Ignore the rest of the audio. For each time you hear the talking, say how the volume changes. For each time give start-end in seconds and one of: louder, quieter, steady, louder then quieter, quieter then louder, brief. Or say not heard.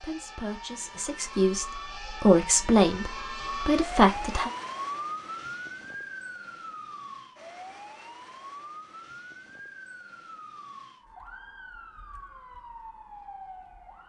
0.0-4.5 louder.